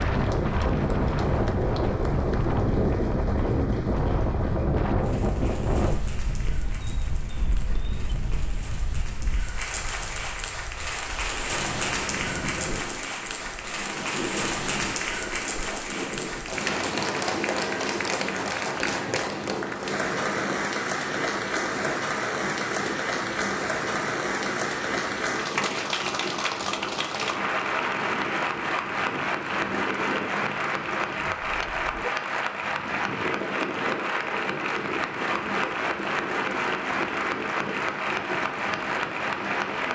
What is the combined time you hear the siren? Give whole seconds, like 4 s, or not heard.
not heard.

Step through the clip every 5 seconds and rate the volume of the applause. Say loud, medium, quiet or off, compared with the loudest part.
quiet, quiet, loud, loud, loud, loud, loud, loud.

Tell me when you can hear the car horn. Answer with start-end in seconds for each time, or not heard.
6.6-8.2, 31.4-32.1.